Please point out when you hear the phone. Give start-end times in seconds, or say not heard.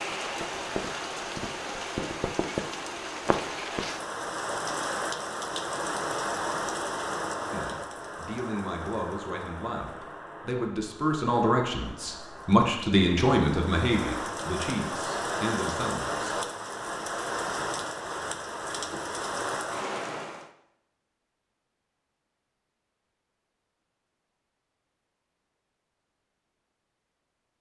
not heard.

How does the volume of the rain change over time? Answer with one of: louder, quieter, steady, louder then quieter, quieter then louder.
quieter then louder.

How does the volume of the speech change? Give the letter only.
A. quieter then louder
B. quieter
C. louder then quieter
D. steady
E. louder
C.